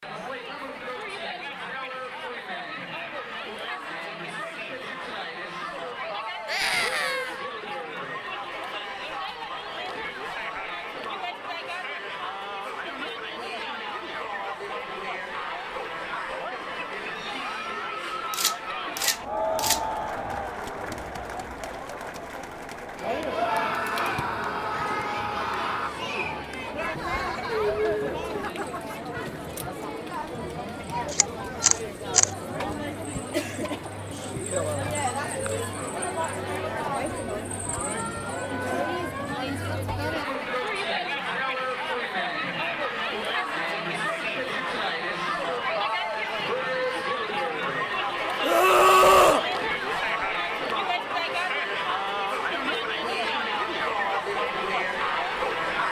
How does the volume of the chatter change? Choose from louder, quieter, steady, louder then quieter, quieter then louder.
louder.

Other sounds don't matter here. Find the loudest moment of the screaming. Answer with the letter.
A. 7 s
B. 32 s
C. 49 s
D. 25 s
C.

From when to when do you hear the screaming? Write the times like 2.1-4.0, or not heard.
6.5-7.4, 23.3-25.9, 48.4-49.5.